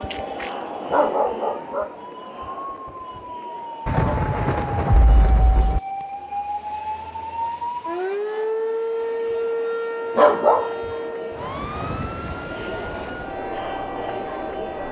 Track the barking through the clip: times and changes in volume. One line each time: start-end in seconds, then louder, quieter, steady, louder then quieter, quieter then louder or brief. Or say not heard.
0.0-4.3 quieter
9.0-10.9 brief.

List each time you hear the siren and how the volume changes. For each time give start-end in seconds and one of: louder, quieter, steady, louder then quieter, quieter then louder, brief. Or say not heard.
0.0-14.8 louder then quieter.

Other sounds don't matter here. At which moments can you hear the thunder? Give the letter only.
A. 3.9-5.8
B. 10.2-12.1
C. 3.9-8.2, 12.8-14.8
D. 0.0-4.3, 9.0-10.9
A.